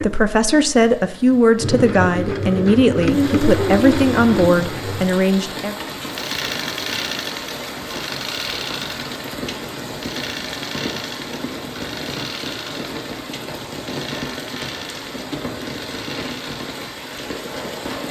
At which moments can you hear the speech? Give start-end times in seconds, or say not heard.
0.0-5.8.